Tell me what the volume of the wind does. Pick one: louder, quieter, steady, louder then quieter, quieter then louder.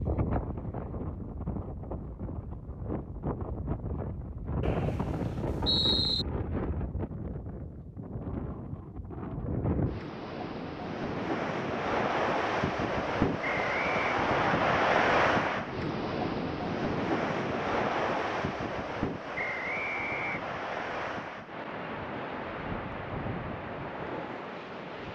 louder then quieter.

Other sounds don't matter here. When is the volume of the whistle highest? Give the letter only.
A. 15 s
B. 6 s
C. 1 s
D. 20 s
B.